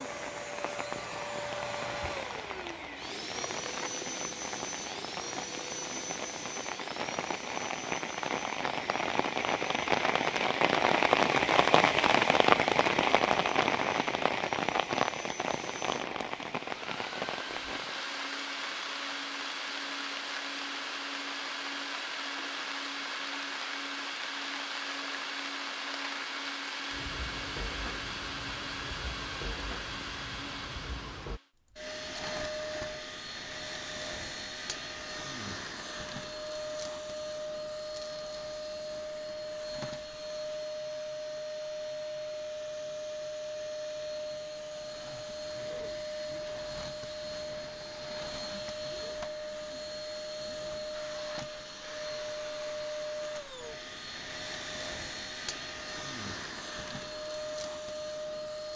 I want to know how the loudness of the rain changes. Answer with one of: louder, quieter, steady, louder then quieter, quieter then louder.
louder then quieter.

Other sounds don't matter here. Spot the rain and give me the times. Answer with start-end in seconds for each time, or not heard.
0.0-31.4.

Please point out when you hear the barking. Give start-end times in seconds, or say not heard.
not heard.